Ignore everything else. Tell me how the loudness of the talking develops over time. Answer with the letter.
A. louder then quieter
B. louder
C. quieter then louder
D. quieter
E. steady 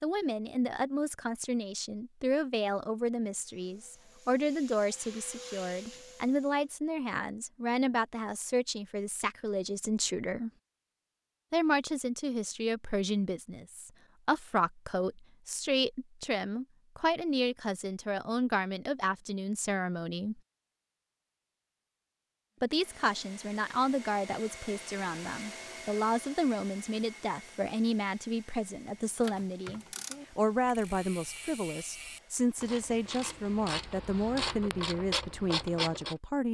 E.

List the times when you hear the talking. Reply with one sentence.
You can hear the talking from 0.0 to 10.5 s, from 11.5 to 20.4 s and from 22.6 to 36.5 s.